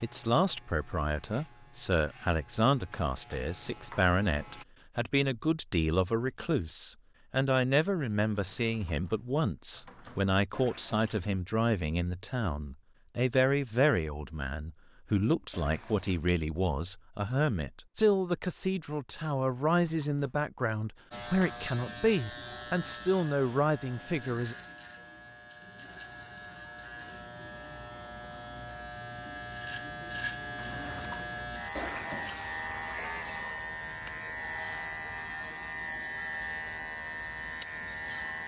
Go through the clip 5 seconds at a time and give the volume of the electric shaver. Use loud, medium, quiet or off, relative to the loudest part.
quiet, off, off, off, medium, medium, loud, loud.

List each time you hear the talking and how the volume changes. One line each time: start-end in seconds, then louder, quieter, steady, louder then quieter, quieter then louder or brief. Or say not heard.
0.0-24.6 steady.